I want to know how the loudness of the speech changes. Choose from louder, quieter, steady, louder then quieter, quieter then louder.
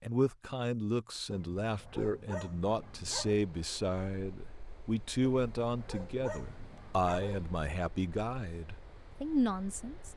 steady.